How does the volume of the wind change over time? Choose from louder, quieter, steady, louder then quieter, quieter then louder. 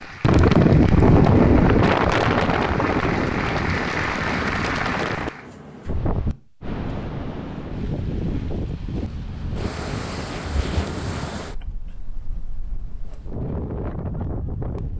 quieter.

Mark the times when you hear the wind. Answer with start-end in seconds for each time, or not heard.
0.2-14.9.